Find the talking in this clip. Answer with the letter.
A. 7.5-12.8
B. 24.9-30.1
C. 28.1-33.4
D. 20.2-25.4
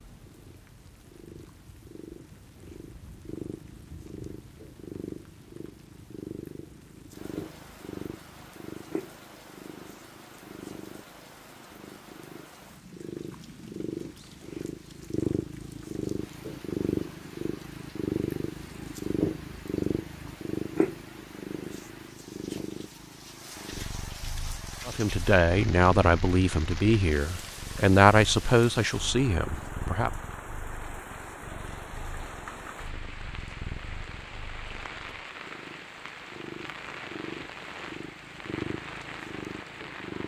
B.